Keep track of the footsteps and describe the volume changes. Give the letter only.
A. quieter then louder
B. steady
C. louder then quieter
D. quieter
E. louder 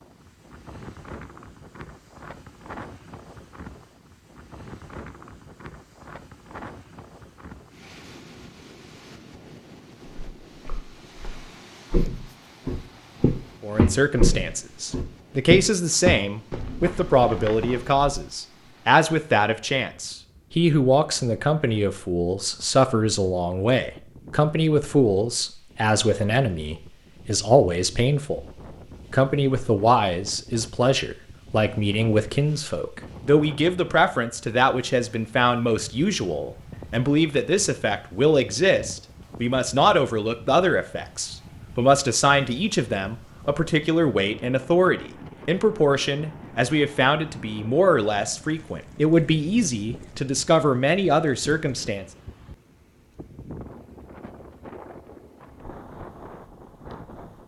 C.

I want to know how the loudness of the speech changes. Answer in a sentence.
The volume of the speech stays about the same.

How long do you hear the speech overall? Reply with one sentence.
The speech can be heard for 38 seconds in total.